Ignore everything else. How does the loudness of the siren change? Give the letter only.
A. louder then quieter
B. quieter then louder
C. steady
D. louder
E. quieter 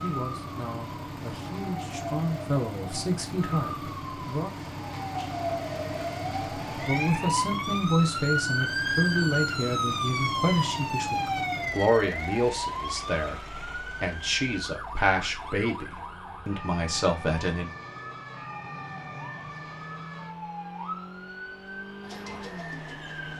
A.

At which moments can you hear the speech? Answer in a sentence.
You can hear the speech from 0.0 to 4.5 s and from 6.8 to 17.7 s.